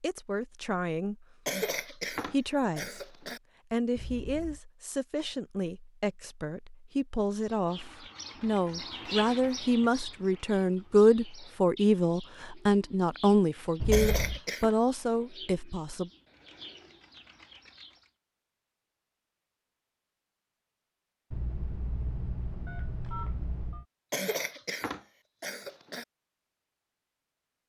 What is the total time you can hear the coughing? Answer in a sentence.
You can hear the coughing for 5 seconds altogether.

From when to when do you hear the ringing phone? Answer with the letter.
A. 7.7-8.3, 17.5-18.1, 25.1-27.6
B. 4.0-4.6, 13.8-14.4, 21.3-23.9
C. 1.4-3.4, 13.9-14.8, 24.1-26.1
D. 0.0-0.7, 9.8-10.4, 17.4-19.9
B.